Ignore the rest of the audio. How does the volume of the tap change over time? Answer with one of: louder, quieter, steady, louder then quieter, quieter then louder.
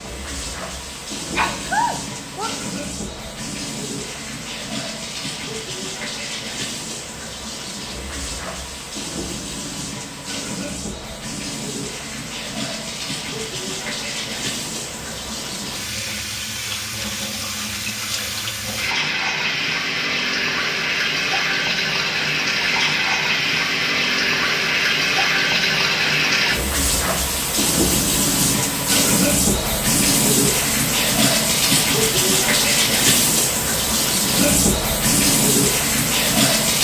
louder.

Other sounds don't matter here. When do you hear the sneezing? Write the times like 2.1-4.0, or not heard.
1.3-2.5.